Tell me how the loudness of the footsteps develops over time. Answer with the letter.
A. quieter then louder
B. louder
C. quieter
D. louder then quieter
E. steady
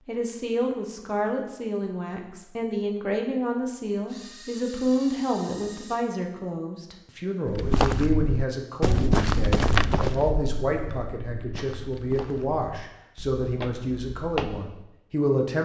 A.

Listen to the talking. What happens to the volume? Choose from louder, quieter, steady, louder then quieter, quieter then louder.
steady.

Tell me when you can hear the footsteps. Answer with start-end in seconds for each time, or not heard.
7.5-14.8.